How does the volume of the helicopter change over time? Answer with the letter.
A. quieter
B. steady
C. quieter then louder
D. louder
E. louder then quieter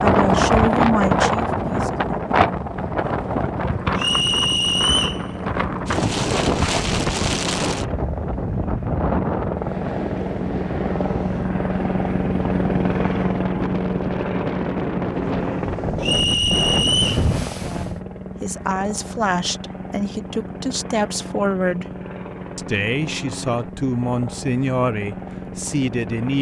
E.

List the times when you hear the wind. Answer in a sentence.
The wind can be heard from 0.0 to 18.0 s.